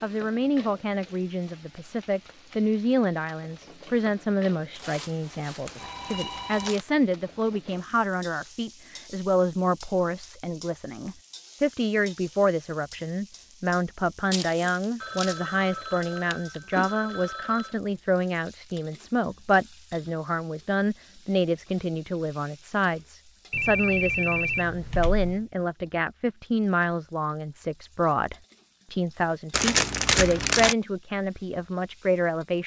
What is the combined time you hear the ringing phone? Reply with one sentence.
The ringing phone can be heard for 6 seconds in total.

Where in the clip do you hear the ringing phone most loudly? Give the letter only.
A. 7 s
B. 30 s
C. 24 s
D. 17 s
C.